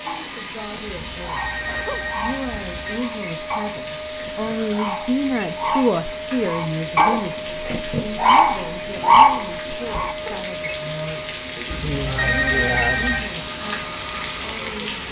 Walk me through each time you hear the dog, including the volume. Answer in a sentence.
The dog can be heard from 0.1 to 10.4 s, getting louder.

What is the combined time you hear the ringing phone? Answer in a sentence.
You can hear the ringing phone for 4 seconds altogether.